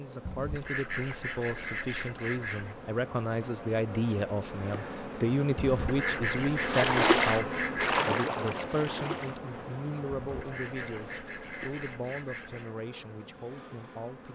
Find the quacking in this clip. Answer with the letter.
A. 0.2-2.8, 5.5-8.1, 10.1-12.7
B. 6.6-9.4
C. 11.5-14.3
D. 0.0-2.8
A.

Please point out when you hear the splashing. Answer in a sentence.
You can hear the splashing from 6.6 to 9.4 s.